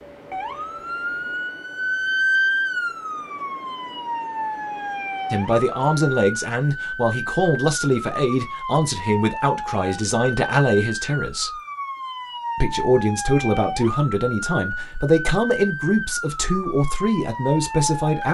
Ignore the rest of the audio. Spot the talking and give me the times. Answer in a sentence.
You can hear the talking from 5.3 to 11.5 s and from 12.6 to 18.2 s.